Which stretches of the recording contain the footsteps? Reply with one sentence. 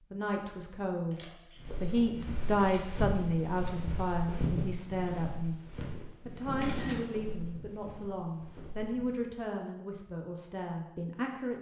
The footsteps can be heard from 1.6 to 9.3 s.